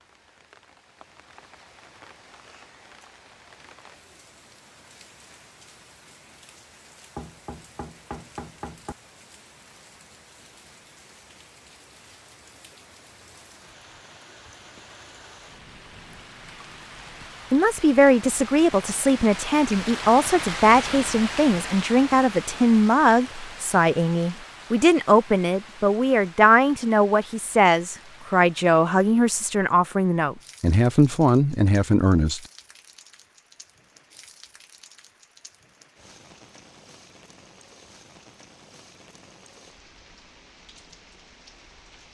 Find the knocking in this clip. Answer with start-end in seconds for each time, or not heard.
7.2-8.9.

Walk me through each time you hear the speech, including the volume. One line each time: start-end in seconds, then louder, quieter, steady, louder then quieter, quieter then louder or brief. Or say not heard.
17.5-32.4 steady.